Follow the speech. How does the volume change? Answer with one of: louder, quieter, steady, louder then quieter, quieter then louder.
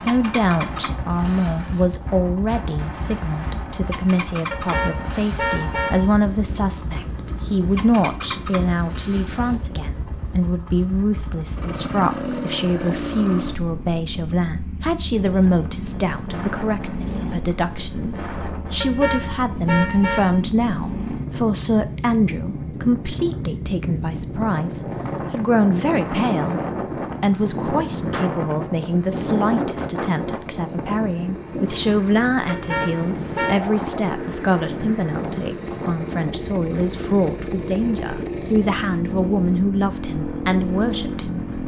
steady.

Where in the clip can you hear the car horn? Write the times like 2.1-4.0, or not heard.
4.5-6.2, 18.8-20.4, 32.5-33.6.